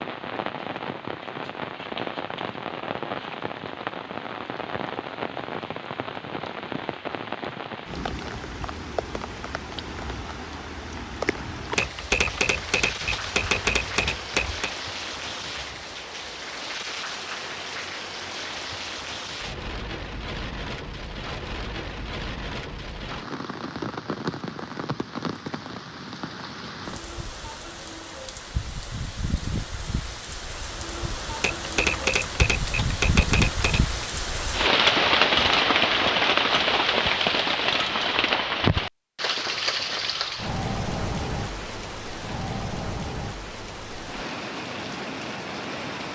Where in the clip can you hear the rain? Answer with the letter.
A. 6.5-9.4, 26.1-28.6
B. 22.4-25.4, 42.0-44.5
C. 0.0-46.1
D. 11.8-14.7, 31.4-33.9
C.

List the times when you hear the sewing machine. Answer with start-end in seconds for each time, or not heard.
not heard.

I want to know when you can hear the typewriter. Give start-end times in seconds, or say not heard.
11.8-14.7, 31.4-33.9.